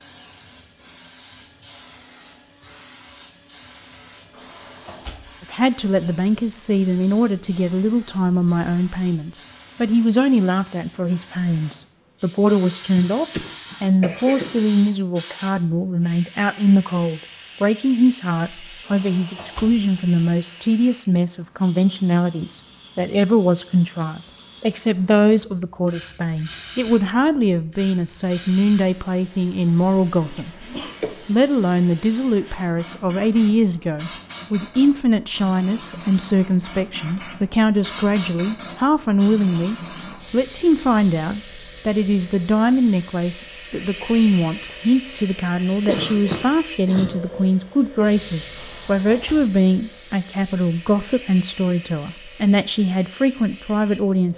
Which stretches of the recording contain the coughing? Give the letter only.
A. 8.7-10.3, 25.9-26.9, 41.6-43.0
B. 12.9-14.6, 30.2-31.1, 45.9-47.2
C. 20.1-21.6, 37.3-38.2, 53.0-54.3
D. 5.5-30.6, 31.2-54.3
B.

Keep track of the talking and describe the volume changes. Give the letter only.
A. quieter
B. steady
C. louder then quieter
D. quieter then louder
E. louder
B.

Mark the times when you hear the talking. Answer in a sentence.
The talking can be heard from 5.5 to 30.6 s and from 31.2 to 54.3 s.